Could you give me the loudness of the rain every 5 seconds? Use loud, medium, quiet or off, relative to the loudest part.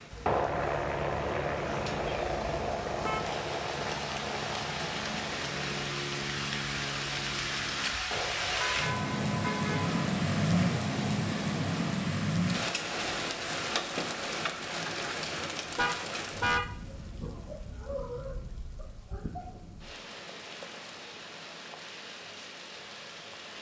medium, loud, loud, medium, quiet.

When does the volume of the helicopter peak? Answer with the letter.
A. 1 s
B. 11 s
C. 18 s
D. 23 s
A.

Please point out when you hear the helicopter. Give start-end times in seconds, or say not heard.
0.2-11.9.